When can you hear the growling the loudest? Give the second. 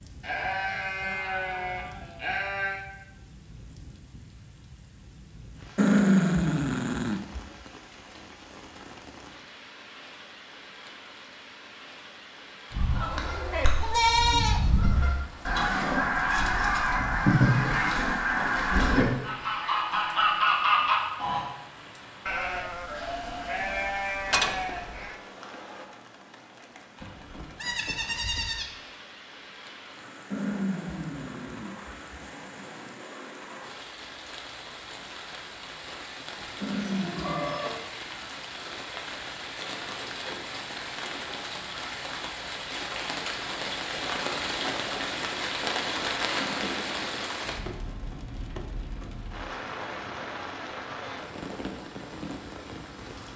6 s.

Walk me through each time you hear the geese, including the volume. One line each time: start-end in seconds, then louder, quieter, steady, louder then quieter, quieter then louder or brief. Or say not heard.
12.7-21.4 louder.